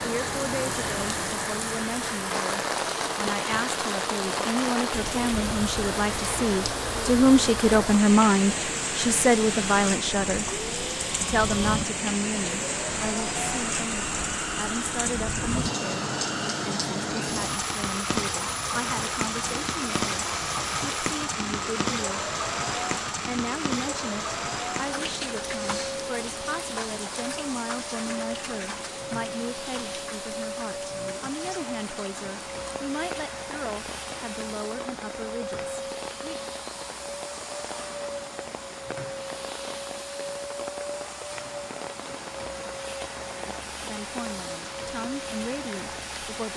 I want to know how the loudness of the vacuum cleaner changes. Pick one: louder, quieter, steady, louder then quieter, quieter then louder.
steady.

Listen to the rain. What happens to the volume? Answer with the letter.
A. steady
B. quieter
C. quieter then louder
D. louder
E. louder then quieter
B.